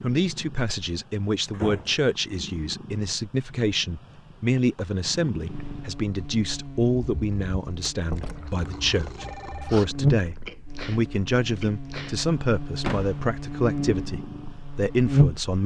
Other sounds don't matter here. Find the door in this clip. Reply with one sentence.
The door can be heard from 1.5 to 2.0 s, from 7.8 to 8.4 s and from 12.8 to 13.2 s.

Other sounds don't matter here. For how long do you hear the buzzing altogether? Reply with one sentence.
The buzzing can be heard for 10 seconds in total.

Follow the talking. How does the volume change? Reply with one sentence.
The loudness of the talking stays about the same.